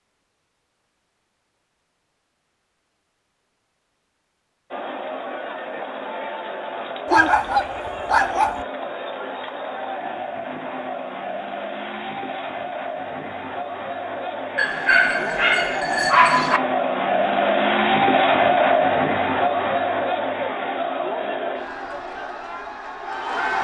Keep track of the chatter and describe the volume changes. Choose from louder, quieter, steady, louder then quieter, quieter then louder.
louder then quieter.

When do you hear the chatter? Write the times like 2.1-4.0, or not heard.
4.7-23.5.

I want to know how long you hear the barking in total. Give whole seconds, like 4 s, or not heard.
4 s.